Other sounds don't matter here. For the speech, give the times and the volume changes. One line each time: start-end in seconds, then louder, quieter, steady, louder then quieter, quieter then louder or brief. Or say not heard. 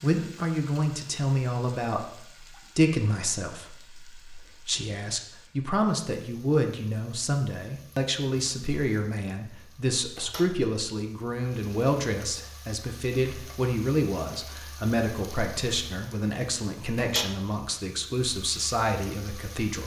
0.0-19.8 steady.